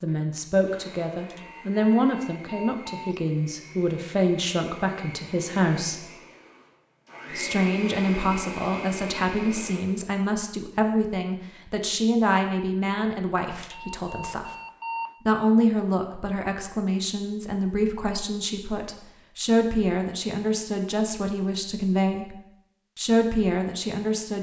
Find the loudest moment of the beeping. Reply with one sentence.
The volume of the beeping peaks at 15 seconds.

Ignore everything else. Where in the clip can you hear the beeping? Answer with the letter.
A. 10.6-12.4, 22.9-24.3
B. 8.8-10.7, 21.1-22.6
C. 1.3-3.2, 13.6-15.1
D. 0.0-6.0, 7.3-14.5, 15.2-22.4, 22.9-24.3
C.